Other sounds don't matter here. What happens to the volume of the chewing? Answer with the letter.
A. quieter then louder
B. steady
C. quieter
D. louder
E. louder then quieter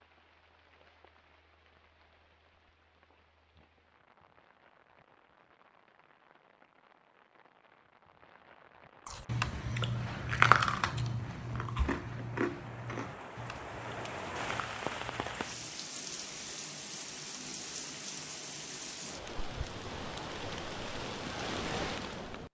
C.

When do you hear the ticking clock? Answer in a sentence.
You can't hear the ticking clock here.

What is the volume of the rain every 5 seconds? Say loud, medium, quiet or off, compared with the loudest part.
quiet, quiet, loud, loud, loud.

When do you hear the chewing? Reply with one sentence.
You can hear the chewing from 9.1 to 15.8 s.